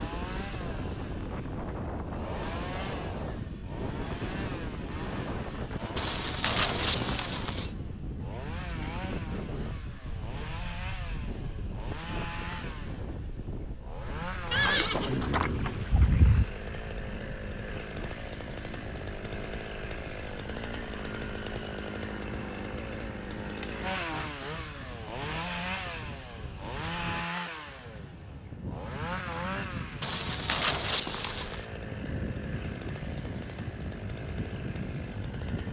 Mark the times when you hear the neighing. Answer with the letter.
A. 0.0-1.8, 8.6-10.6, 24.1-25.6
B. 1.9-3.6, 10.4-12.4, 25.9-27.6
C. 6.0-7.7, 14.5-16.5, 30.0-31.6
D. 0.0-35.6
C.